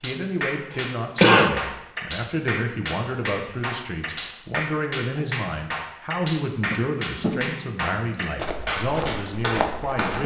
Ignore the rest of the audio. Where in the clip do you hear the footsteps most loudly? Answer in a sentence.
The volume of the footsteps peaks at 10 seconds.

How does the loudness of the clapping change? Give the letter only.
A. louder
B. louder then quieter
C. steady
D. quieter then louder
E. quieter
C.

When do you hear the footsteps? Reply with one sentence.
The footsteps can be heard from 8.3 to 10.2 s.